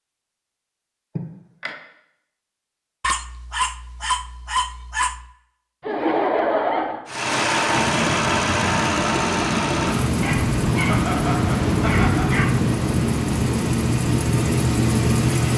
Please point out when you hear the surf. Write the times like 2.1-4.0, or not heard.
7.8-15.4.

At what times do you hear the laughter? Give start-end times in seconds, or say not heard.
1.1-1.8, 5.8-7.0, 10.8-12.3.